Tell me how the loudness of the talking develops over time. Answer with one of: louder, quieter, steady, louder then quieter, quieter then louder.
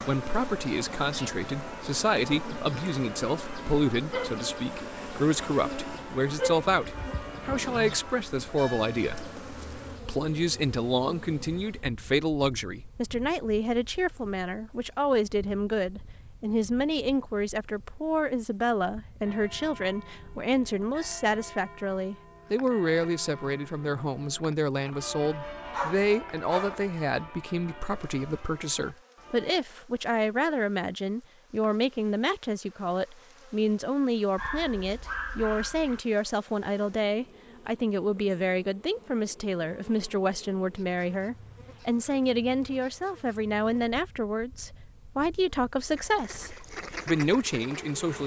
steady.